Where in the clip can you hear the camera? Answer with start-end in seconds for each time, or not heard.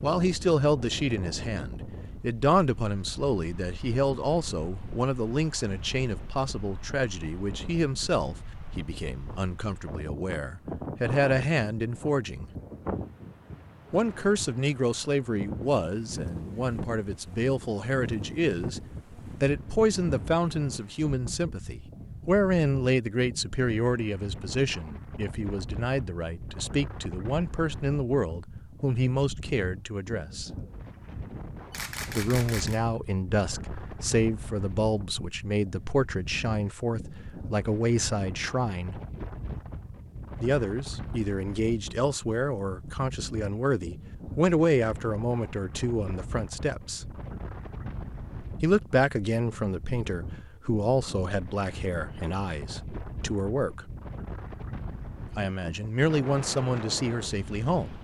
31.7-32.8.